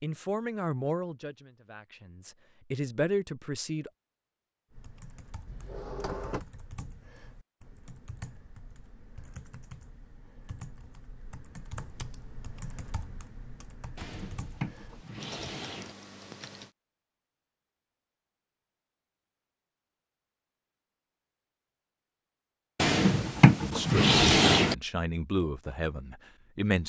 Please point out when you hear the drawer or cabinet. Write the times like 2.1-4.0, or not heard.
5.5-6.5, 13.9-15.9, 22.8-24.8.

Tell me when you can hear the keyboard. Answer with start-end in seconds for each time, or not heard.
4.7-16.7.